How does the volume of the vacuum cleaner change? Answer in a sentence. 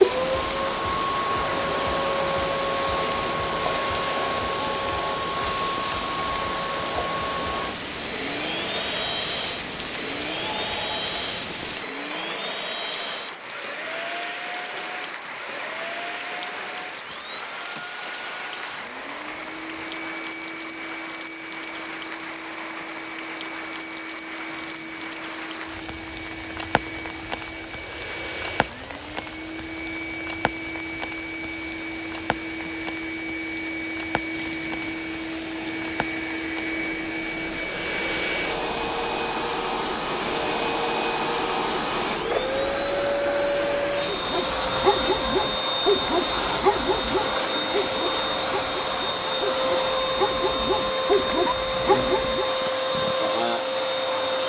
The loudness of the vacuum cleaner goes down, then up.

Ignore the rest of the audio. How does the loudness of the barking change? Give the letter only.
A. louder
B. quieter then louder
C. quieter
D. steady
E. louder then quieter
B.